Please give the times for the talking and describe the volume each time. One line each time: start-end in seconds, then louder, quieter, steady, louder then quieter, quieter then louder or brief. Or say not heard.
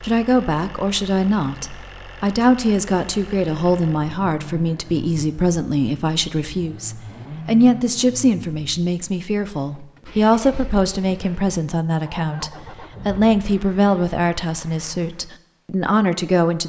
0.0-16.6 steady.